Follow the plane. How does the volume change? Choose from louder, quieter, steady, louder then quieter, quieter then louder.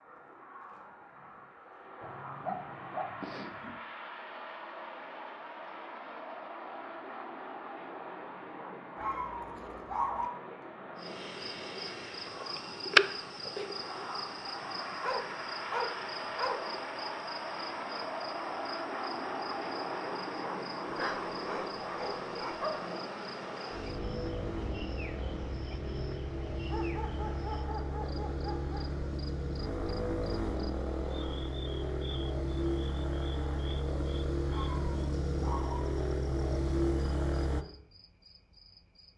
louder.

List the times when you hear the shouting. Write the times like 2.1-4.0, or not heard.
not heard.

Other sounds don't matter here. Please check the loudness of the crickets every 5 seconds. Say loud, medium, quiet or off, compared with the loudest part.
off, off, loud, quiet, quiet, quiet, quiet, quiet.